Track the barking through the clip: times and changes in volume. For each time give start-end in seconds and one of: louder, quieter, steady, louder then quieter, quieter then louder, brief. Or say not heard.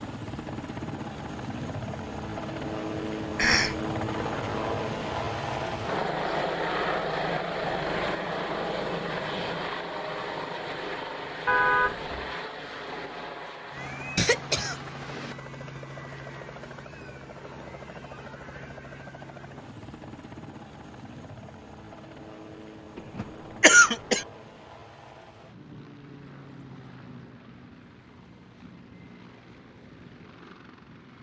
not heard.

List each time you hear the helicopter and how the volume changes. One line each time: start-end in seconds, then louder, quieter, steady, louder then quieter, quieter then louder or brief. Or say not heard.
0.0-31.1 quieter.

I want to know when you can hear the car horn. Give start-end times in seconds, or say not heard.
11.4-12.3.